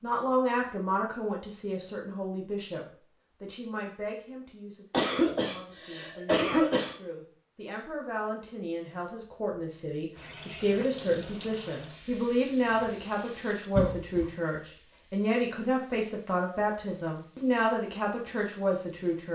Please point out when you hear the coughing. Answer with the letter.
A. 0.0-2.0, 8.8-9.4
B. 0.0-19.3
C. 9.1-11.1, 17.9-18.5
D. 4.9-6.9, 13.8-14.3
D.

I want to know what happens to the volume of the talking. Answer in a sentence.
The loudness of the talking goes down, then up.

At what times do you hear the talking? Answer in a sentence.
The talking can be heard from 0.0 to 19.3 s.